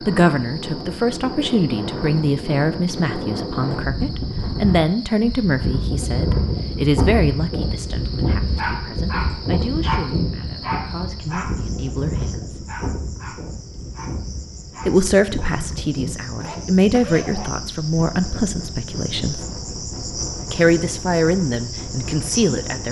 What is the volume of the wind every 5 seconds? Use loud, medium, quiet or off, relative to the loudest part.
loud, loud, medium, medium, medium.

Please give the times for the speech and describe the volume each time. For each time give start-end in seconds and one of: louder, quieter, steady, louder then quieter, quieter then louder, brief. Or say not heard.
0.1-12.7 quieter
14.8-19.4 louder then quieter
20.5-22.8 brief.